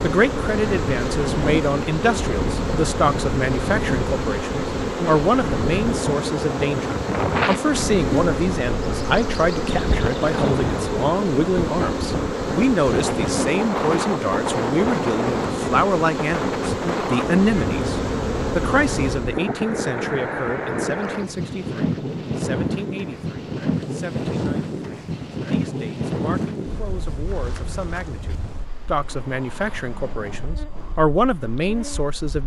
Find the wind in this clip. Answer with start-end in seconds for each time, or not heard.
0.0-32.4.